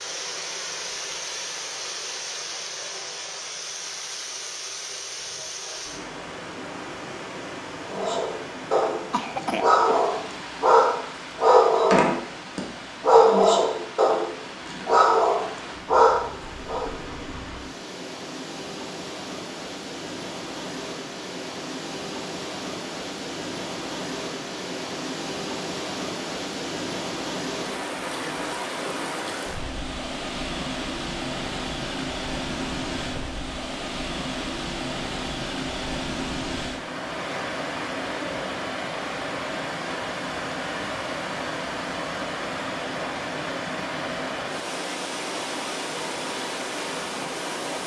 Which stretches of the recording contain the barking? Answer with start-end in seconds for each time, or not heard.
7.8-16.9.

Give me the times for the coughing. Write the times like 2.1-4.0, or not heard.
9.1-10.1.